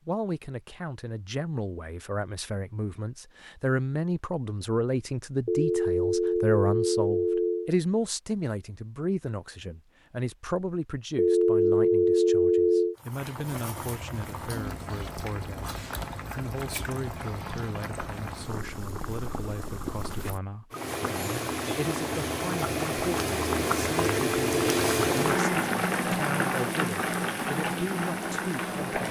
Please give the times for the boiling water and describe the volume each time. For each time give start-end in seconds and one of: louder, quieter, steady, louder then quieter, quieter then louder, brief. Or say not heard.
12.9-29.0 louder.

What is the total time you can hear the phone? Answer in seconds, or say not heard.
5 s.